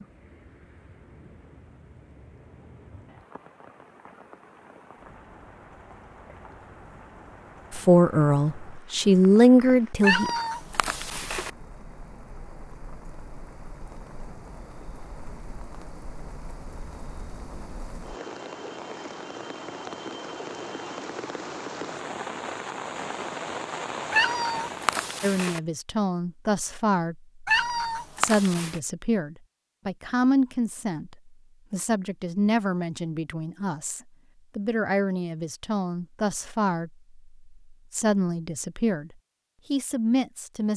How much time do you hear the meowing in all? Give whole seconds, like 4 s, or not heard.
4 s.